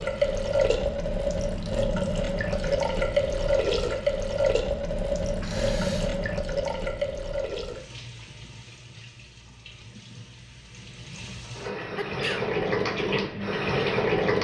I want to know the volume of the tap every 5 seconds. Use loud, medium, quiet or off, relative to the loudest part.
loud, medium, loud.